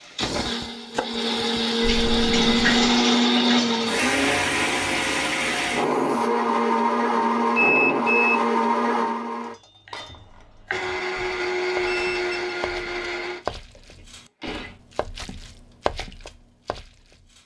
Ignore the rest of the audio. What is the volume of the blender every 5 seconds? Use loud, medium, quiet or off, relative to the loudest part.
loud, loud, medium, off.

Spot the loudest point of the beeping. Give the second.
8 s.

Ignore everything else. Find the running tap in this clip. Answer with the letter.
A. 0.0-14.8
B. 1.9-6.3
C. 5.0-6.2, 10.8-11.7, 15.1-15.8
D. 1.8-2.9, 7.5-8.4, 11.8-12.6
B.